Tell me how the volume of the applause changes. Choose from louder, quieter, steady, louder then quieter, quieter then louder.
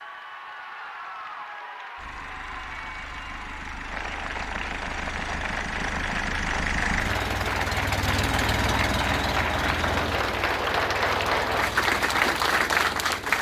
louder.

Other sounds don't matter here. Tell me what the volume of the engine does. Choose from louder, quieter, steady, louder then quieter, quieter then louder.
louder then quieter.